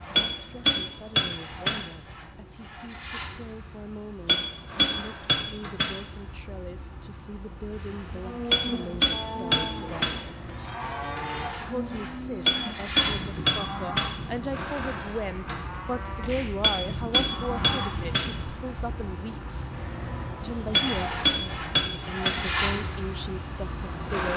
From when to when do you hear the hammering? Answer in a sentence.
The hammering can be heard from 0.1 to 1.8 s, from 4.2 to 6.0 s, from 8.5 to 10.2 s, from 12.4 to 14.1 s, from 16.6 to 18.3 s and from 20.7 to 22.4 s.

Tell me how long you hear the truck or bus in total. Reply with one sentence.
You can hear the truck or bus for 24 seconds altogether.